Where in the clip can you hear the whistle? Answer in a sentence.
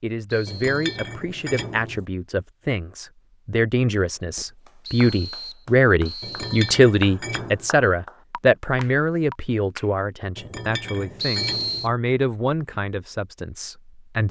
The whistle can be heard from 0.2 to 1.1 s, from 4.8 to 6.6 s and from 11.2 to 11.9 s.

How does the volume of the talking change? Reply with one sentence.
The volume of the talking goes up, then down.